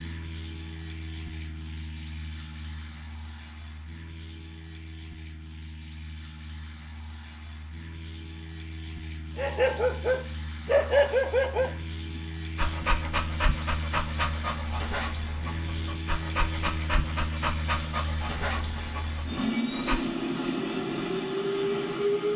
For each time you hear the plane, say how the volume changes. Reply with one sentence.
The plane can be heard from 0.0 to 22.3 s, getting louder.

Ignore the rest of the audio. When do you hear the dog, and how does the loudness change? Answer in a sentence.
You can hear the dog from 9.3 to 20.1 s, getting quieter.